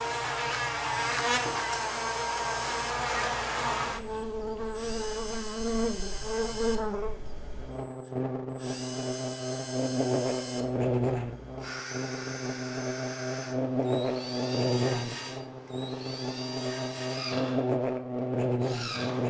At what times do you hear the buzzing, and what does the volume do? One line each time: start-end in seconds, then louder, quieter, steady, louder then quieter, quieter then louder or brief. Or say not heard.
0.0-19.2 steady.